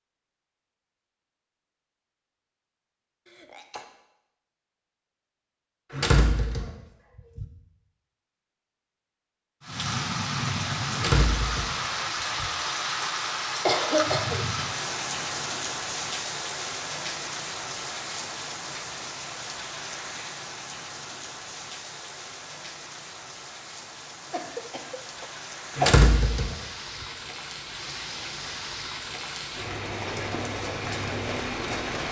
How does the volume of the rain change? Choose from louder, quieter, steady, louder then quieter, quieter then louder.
quieter then louder.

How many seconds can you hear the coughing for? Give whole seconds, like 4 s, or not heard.
3 s.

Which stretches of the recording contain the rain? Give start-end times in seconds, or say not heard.
9.6-32.0.